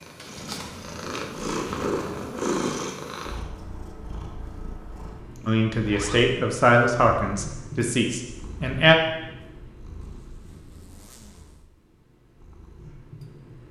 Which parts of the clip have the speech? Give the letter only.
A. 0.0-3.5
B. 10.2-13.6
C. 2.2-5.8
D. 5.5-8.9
D.